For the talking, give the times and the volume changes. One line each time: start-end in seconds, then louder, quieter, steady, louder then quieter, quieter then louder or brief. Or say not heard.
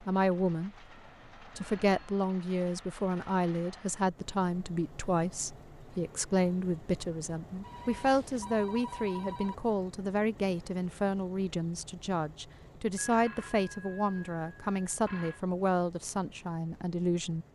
0.0-0.8 brief
1.4-17.4 steady.